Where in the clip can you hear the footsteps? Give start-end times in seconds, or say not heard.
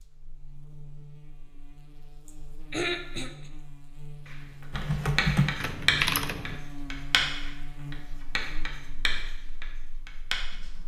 not heard.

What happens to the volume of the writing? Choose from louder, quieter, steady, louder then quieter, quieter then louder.
quieter.